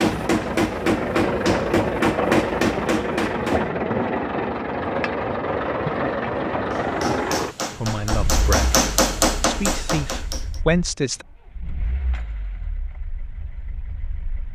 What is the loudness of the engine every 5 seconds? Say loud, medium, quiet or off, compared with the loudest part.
loud, loud, quiet.